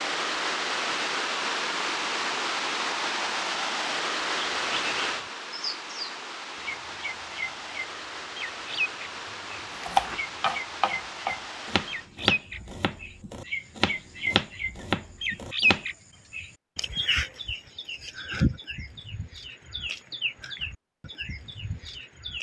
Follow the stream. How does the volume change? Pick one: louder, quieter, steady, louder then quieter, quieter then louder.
quieter.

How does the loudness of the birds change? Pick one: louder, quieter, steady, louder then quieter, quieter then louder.
louder then quieter.